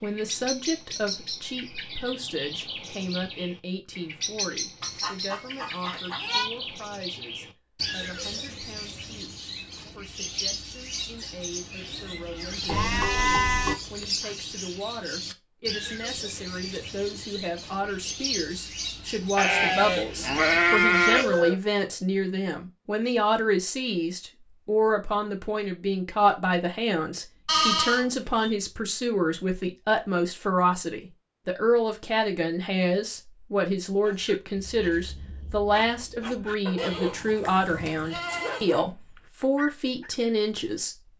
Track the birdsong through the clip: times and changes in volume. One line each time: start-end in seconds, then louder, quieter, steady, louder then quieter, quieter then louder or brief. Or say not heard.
0.0-21.5 steady.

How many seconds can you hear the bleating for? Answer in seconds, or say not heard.
8 s.